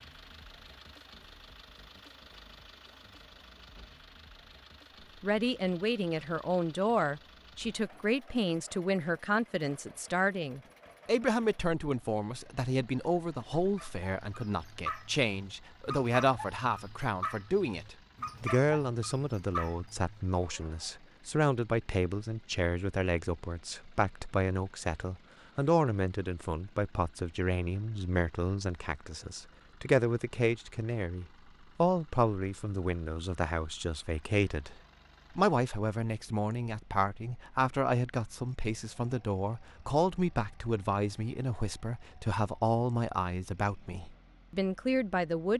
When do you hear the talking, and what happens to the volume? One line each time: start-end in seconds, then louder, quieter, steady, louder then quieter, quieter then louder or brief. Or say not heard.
5.2-34.8 steady
35.4-45.5 steady.